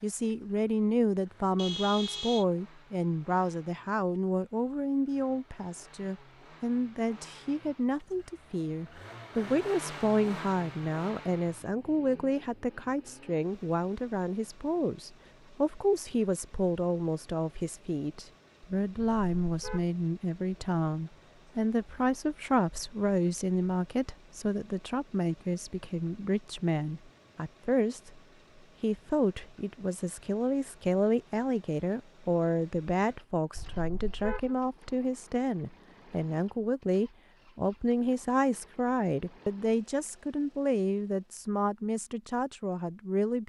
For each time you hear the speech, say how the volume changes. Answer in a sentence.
You can hear the speech from 0.0 to 28.2 s, at a steady volume; and from 28.8 to 43.4 s, at a steady volume.